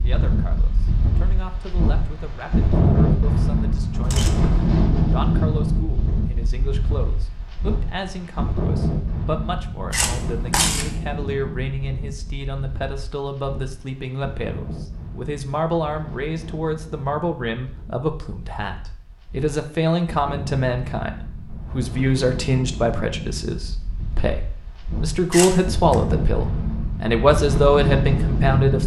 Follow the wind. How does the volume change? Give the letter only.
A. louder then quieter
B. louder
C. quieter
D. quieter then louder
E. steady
D.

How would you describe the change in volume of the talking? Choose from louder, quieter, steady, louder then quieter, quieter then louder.
louder.